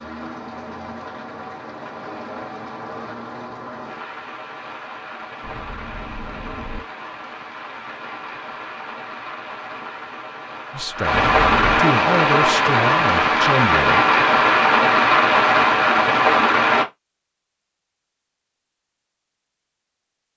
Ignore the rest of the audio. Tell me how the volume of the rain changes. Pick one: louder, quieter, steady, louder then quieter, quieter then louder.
louder.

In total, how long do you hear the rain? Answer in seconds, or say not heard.
17 s.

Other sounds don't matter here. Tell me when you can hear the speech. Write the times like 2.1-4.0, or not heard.
10.7-14.1.